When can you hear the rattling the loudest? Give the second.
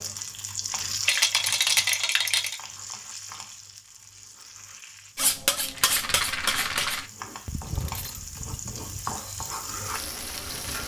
2 s.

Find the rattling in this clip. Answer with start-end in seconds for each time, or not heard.
1.1-2.5, 5.7-7.1.